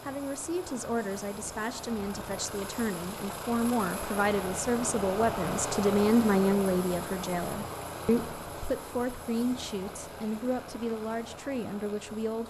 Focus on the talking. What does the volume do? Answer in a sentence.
The volume of the talking goes up, then down.